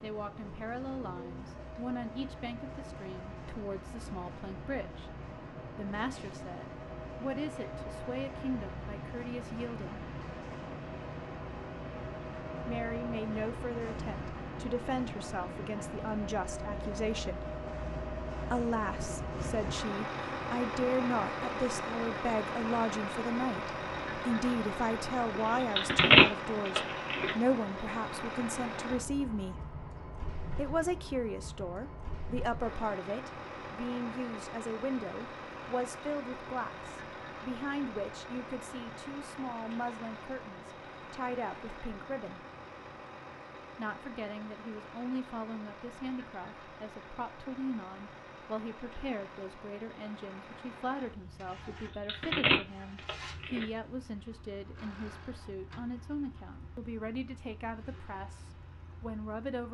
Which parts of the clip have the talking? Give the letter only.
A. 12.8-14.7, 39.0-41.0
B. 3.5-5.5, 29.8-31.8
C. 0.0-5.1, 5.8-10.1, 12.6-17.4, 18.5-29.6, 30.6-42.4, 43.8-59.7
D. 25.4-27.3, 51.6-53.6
C.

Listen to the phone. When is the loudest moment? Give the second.
26 s.